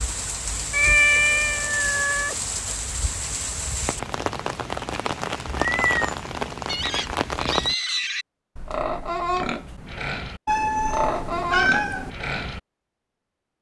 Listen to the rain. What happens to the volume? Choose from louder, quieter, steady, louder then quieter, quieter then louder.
steady.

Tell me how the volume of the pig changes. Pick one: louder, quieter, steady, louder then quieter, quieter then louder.
steady.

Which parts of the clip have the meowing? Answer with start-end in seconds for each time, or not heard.
0.7-2.4, 5.5-6.2, 10.4-12.1.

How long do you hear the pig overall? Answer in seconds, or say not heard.
6 s.